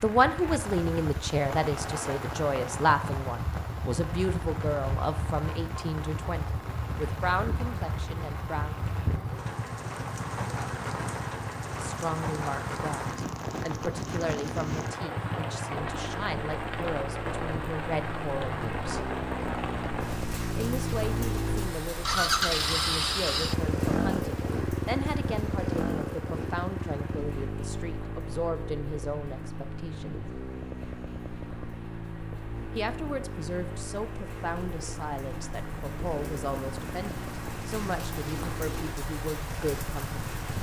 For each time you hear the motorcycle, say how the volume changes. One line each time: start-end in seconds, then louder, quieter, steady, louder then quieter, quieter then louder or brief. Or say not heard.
0.0-40.5 louder then quieter.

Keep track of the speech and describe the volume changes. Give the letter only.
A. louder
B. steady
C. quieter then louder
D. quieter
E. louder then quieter
D.